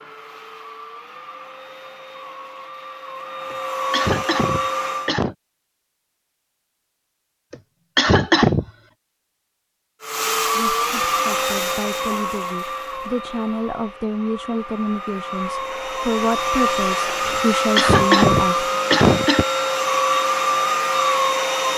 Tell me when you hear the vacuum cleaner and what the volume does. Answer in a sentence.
The vacuum cleaner can be heard from 0.0 to 5.2 s, getting louder; and from 10.0 to 21.7 s, getting quieter then louder.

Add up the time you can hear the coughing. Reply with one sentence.
You can hear the coughing for 5 seconds altogether.